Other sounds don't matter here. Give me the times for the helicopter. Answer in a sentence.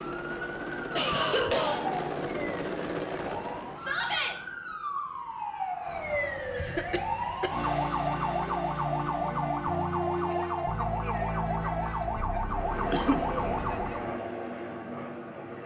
The helicopter can be heard from 0.0 to 4.0 s and from 12.4 to 15.6 s.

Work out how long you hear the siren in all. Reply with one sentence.
You can hear the siren for 14 seconds altogether.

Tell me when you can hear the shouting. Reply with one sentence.
You can hear the shouting from 3.8 to 4.3 s.